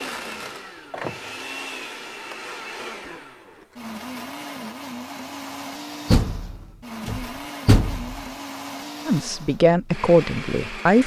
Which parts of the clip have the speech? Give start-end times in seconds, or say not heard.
9.1-11.0.